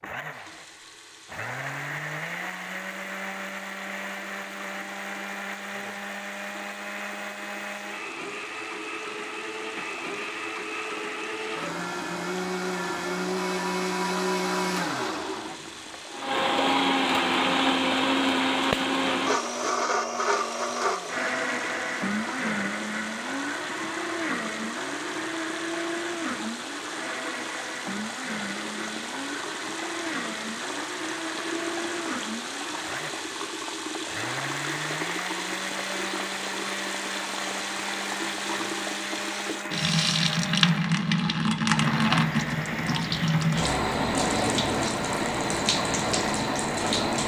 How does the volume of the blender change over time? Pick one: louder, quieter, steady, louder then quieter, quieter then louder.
louder then quieter.